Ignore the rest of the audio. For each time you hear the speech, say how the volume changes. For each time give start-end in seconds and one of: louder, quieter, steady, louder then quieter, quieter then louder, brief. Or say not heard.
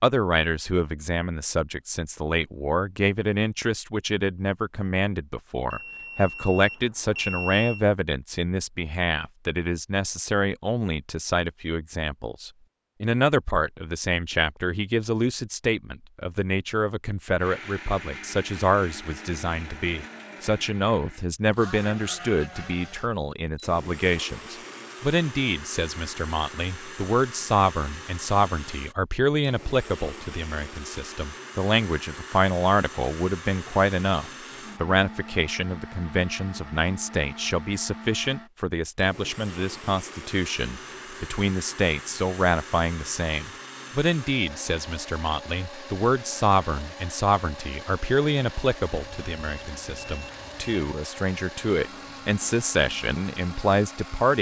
0.0-54.3 steady.